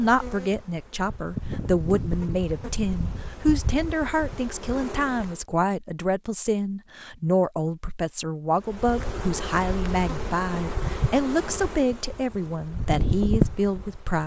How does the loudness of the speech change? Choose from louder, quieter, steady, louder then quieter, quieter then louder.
steady.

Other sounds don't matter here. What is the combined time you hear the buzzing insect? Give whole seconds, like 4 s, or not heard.
11 s.